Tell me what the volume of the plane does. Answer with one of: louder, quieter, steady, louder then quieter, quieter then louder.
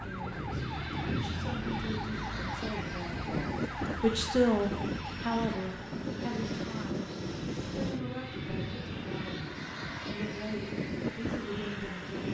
steady.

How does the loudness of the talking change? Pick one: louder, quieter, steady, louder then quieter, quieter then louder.
louder then quieter.